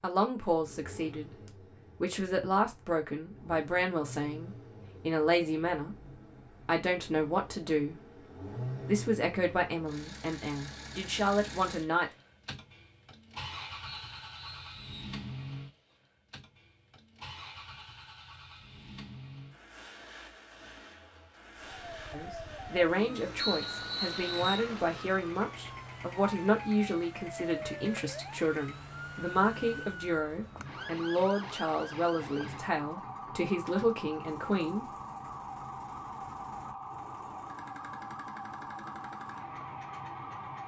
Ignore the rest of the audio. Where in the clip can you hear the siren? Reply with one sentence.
You can hear the siren from 21.6 to 40.6 s.